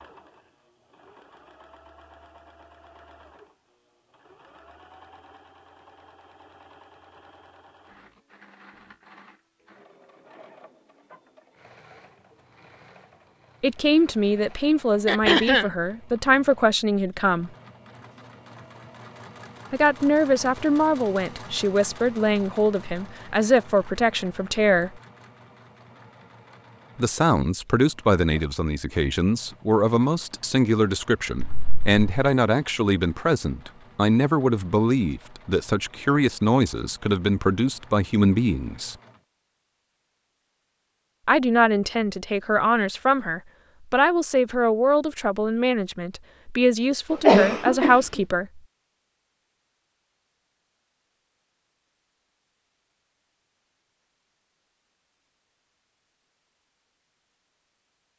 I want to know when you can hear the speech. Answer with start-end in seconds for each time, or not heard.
13.6-17.5, 19.7-25.0, 26.9-39.0, 41.2-48.6.